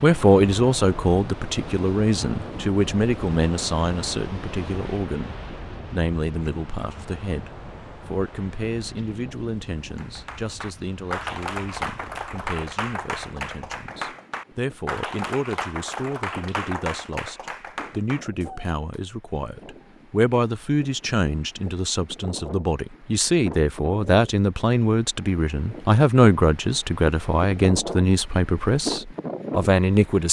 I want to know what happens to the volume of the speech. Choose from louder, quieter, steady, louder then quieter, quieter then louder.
quieter then louder.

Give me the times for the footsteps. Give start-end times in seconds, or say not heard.
not heard.